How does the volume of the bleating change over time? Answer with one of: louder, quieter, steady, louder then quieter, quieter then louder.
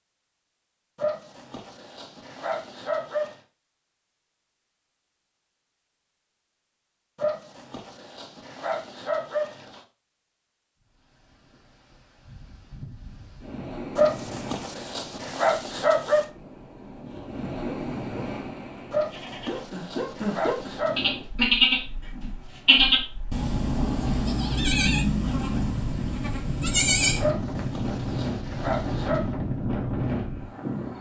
louder then quieter.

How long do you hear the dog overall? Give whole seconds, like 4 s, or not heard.
12 s.